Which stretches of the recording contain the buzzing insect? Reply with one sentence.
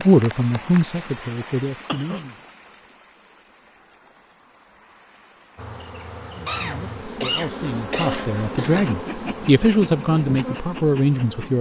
The buzzing insect can be heard from 5.5 to 11.5 s.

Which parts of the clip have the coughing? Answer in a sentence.
You can hear the coughing from 1.9 to 2.4 s and from 6.5 to 8.9 s.